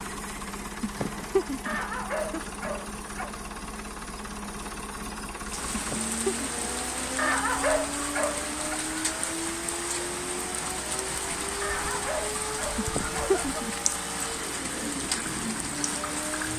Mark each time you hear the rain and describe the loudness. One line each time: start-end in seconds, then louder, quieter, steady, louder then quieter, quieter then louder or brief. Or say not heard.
5.4-16.5 steady.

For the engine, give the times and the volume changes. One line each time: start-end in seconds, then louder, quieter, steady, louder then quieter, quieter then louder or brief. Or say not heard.
0.0-16.5 steady.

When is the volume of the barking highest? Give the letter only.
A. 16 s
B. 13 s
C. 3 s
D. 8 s
D.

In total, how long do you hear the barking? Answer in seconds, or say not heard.
5 s.